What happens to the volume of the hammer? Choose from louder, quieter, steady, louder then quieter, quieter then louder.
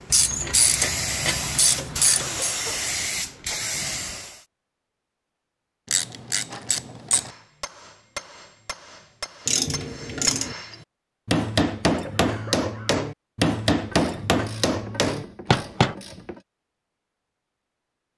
louder.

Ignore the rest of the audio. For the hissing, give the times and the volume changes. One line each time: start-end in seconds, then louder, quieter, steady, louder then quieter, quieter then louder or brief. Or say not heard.
0.0-4.5 steady.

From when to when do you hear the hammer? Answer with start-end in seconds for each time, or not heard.
6.5-15.9.